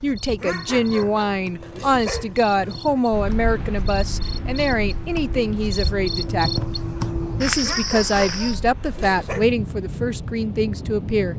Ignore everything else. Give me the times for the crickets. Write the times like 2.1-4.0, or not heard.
0.0-8.6.